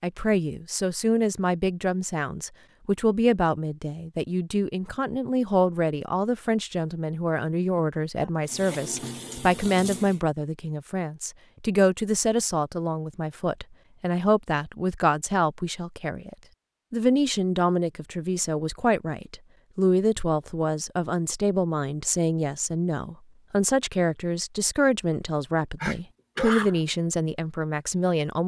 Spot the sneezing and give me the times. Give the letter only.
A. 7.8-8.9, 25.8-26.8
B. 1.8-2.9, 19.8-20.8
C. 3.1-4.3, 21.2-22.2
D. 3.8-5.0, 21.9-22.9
A.